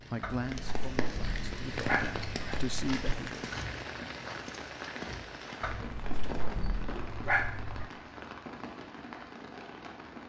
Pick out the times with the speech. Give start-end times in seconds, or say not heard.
0.1-3.5.